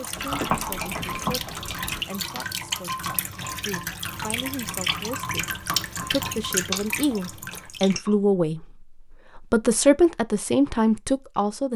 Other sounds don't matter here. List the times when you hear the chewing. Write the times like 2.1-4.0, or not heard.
0.1-2.0, 6.5-8.2.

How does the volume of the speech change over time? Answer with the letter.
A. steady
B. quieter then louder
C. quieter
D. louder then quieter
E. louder
E.